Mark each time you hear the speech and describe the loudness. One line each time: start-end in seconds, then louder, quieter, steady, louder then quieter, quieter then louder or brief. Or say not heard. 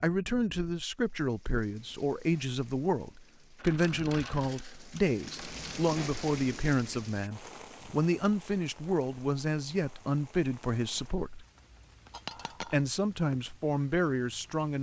0.0-11.4 steady
12.6-14.7 brief.